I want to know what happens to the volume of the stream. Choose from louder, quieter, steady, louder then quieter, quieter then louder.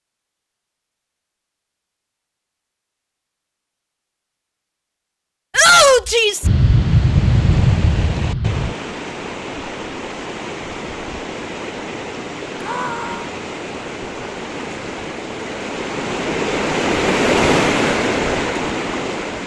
louder.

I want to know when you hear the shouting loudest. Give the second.
6 s.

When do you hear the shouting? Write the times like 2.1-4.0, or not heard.
5.5-6.5, 12.6-13.3.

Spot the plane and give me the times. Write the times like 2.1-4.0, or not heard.
6.4-8.8.